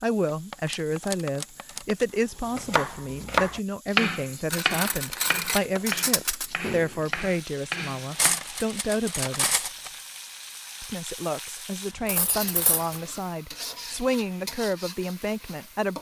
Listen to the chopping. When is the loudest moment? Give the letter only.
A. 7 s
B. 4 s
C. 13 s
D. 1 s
B.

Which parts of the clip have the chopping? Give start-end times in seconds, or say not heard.
2.5-8.4.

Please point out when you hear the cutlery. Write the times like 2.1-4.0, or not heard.
0.5-2.0, 4.5-6.5, 8.1-9.9, 12.1-13.0.